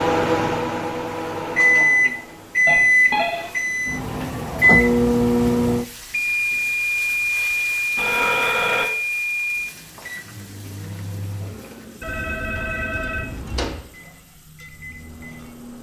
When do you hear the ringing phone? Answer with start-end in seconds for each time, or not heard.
2.6-3.5, 8.0-8.8, 12.0-13.8.